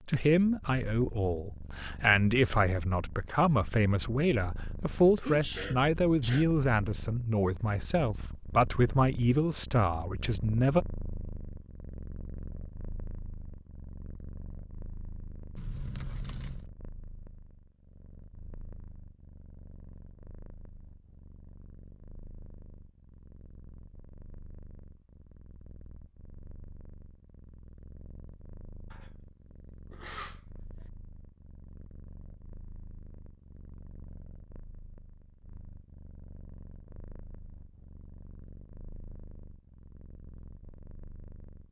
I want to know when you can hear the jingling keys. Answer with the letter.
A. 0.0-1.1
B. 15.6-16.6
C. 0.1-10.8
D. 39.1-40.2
B.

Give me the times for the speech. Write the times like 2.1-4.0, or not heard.
0.1-10.8.